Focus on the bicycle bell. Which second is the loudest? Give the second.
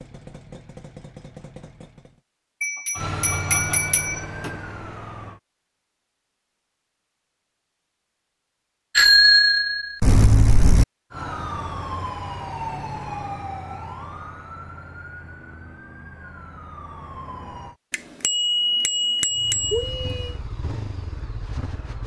9 s.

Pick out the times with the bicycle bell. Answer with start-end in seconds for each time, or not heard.
2.6-4.5, 8.9-10.8, 17.9-20.3.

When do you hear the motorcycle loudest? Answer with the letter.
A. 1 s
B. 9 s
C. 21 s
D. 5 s
C.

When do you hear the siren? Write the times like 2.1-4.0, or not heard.
3.0-5.4, 11.1-17.8.